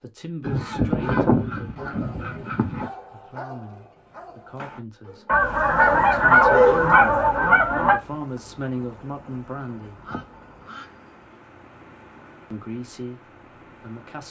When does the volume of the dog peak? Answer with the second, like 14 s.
7 s.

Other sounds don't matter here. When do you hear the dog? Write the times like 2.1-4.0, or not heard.
0.5-7.5.